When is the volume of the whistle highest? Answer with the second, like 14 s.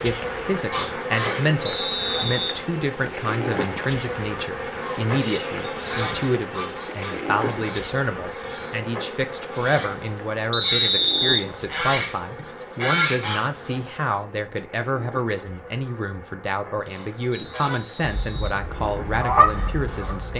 11 s.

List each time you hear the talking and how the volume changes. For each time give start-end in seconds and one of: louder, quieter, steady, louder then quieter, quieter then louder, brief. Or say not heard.
0.0-20.3 steady.